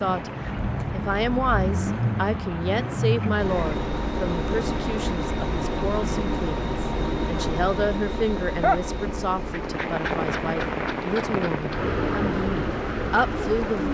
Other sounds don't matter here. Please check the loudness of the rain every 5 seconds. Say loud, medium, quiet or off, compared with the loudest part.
medium, loud, loud.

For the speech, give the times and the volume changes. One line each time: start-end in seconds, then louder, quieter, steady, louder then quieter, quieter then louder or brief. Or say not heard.
0.0-13.8 steady.